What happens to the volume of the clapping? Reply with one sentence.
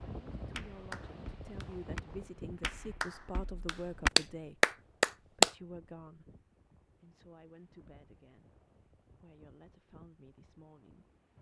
The loudness of the clapping goes up.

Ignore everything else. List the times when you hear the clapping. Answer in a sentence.
The clapping can be heard from 0.5 to 5.5 s.